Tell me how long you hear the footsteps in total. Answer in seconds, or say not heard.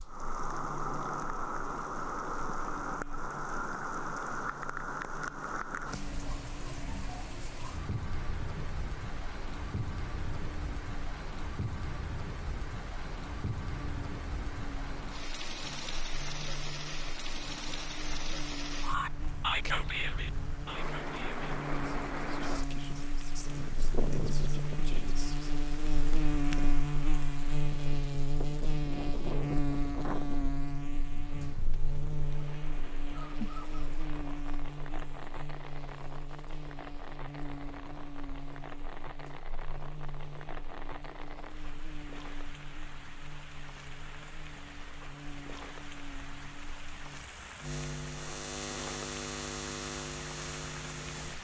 not heard.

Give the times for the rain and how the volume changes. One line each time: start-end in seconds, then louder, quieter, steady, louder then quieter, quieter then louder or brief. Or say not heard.
0.0-51.4 quieter.